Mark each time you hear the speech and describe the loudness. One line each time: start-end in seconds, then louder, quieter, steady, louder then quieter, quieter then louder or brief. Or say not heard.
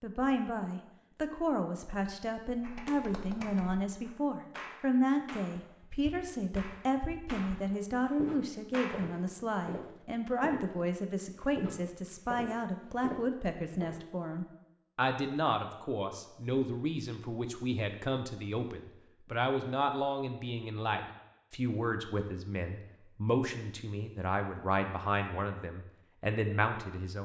0.0-27.2 steady.